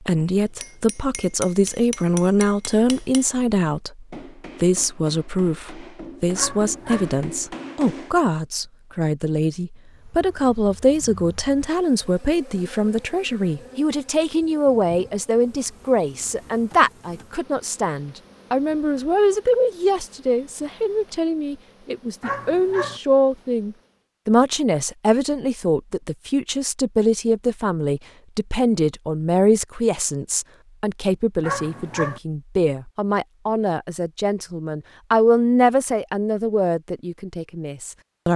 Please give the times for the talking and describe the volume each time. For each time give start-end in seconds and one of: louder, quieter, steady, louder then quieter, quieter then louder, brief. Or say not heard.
0.0-38.3 steady.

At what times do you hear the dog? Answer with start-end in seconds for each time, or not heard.
6.3-7.1, 22.2-23.0, 31.4-32.2.